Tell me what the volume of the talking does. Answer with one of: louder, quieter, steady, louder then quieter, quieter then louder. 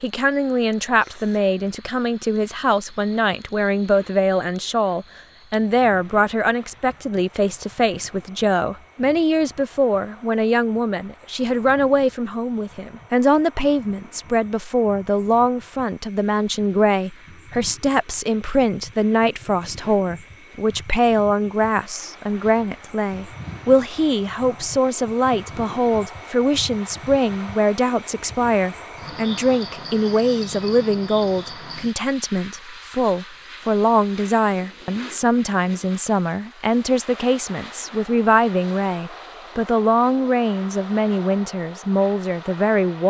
steady.